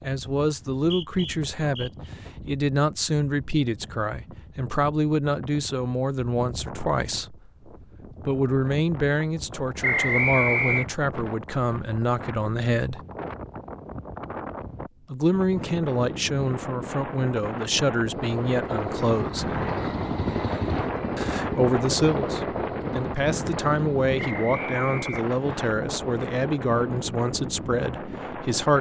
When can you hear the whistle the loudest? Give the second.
10 s.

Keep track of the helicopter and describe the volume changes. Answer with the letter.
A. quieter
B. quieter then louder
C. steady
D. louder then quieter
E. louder
A.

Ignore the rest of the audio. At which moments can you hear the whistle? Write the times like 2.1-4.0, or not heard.
0.8-2.1, 9.8-10.8, 24.1-25.7.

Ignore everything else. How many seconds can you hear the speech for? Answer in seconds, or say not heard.
25 s.